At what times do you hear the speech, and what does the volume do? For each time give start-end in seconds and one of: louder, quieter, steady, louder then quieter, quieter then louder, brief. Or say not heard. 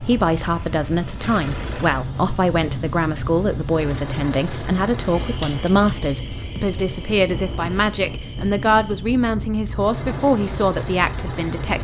0.0-11.7 steady.